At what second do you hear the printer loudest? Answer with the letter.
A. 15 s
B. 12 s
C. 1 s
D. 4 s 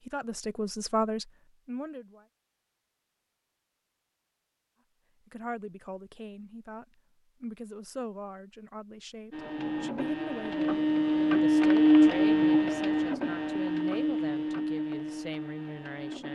B.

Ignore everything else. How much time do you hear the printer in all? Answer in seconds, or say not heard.
7 s.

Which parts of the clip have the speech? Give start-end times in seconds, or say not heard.
0.0-2.2, 5.2-16.2.